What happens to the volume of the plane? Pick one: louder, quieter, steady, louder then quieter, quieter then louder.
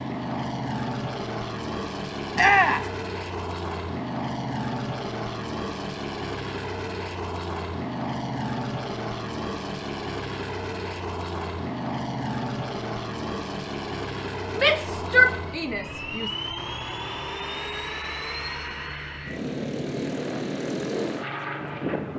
steady.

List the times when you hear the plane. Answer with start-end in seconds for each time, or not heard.
0.0-22.1.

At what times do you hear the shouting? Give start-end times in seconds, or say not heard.
2.4-2.9, 14.6-16.3.